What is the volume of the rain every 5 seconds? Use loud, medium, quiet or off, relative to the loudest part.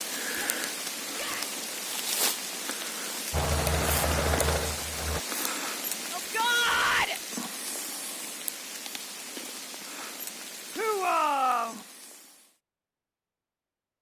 loud, loud, medium.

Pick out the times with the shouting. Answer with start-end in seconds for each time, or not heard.
0.3-1.6, 6.1-7.2, 10.8-11.8.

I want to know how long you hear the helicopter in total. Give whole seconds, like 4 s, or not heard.
2 s.